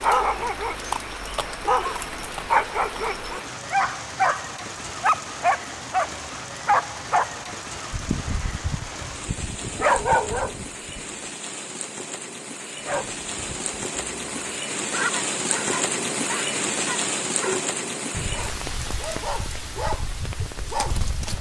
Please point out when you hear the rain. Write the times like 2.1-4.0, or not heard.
0.0-21.3.